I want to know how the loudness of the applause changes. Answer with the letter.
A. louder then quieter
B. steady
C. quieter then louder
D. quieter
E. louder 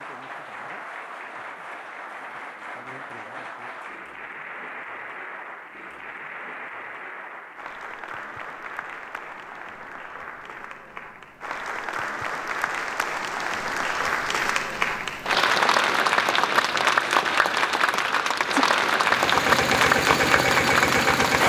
E.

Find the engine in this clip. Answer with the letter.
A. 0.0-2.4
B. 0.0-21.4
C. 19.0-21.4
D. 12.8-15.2
C.